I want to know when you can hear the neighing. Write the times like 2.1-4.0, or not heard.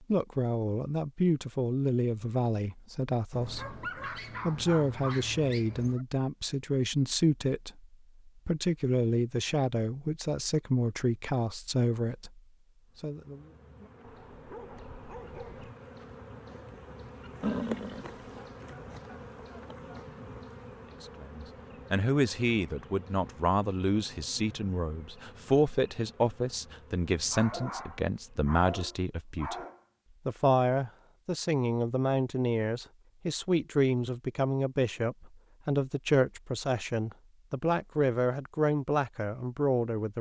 17.4-18.4.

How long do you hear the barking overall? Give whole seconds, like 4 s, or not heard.
7 s.